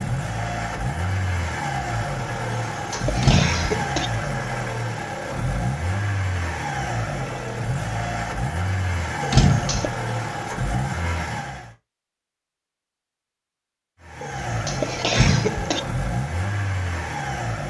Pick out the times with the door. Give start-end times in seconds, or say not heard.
3.2-3.8, 9.3-9.9, 15.2-15.7.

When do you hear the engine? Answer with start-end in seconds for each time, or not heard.
0.0-11.8, 14.0-17.6.